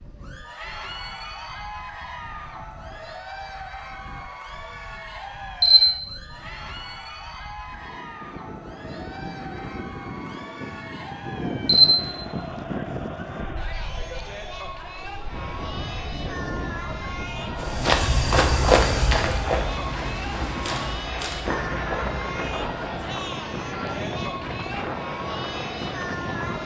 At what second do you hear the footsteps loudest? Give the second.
19 s.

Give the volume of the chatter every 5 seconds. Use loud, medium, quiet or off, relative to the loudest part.
medium, medium, medium, loud, loud, loud.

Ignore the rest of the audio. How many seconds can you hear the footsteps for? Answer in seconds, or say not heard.
5 s.